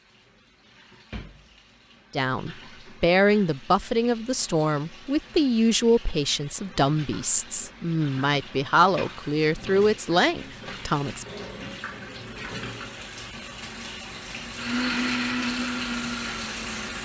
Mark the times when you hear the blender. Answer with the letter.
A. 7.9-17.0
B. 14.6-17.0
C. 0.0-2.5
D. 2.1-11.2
B.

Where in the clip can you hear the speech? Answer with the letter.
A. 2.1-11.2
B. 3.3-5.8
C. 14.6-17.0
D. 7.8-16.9
A.